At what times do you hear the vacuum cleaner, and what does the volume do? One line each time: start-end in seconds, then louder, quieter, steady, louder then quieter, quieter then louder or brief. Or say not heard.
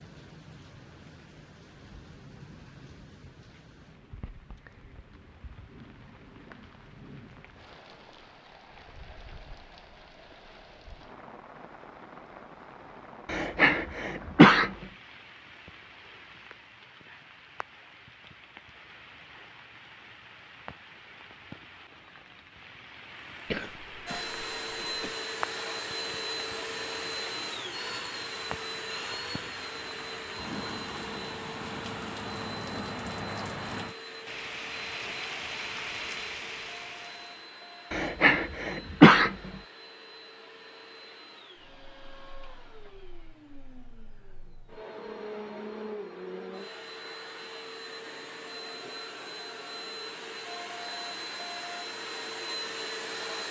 24.1-53.4 quieter then louder.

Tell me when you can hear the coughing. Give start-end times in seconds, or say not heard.
13.2-14.7, 23.5-25.1, 37.9-39.4.